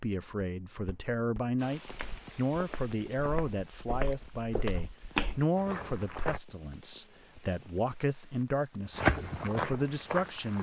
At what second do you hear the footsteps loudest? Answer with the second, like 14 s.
9 s.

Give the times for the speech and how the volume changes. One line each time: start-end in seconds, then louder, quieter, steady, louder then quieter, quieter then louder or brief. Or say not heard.
0.0-10.5 steady.